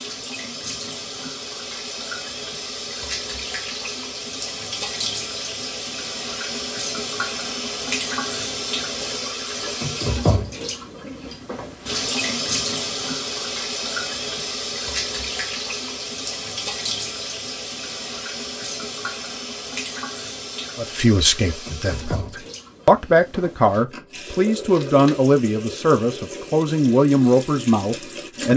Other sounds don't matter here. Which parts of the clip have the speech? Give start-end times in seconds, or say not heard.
20.8-28.5.